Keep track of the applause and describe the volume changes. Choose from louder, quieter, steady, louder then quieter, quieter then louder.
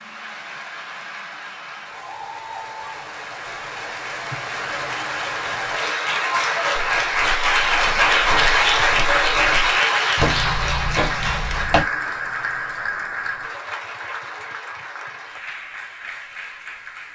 louder then quieter.